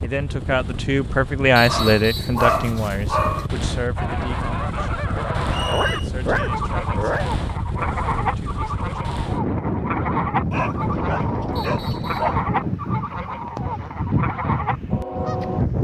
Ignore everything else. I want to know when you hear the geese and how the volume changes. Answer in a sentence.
The geese can be heard from 4.0 to 15.6 s, at a steady volume.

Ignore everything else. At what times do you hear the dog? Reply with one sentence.
The dog can be heard from 1.6 to 3.5 s, from 5.7 to 7.3 s and from 10.5 to 12.4 s.